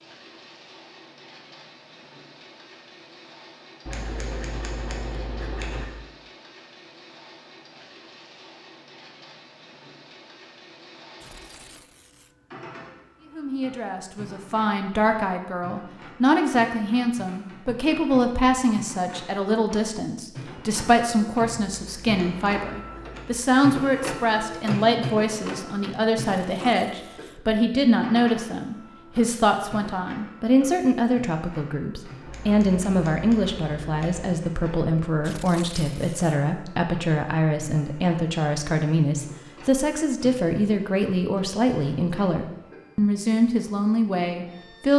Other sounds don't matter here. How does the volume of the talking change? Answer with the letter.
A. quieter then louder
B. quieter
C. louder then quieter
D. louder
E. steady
E.